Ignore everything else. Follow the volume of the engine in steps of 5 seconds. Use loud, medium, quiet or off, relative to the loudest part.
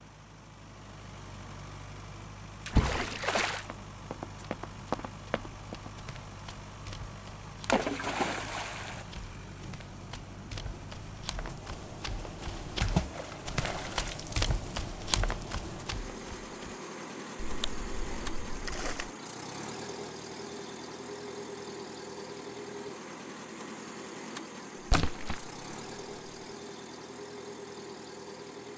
medium, medium, loud, loud, loud, loud.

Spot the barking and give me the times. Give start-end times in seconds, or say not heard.
not heard.